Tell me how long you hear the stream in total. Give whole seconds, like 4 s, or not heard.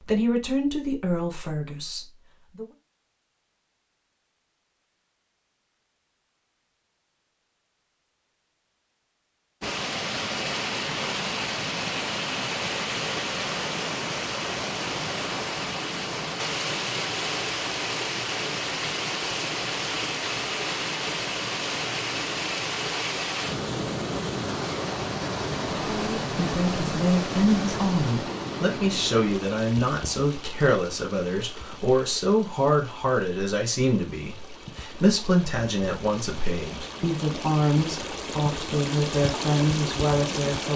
31 s.